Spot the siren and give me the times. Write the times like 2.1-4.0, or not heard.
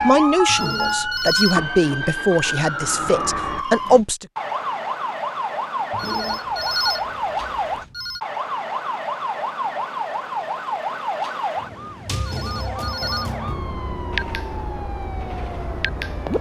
0.0-16.3.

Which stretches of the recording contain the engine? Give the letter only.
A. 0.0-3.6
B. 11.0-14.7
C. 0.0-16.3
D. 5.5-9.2
A.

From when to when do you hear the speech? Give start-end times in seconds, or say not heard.
0.0-4.2.